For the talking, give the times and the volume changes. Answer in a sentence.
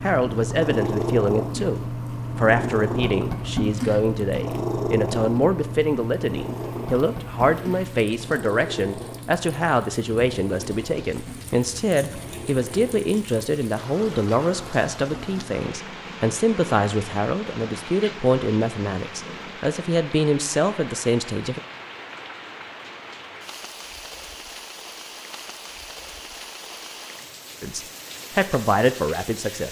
You can hear the talking from 0.0 to 21.6 s, at a steady volume; and briefly from 27.6 to 29.6 s.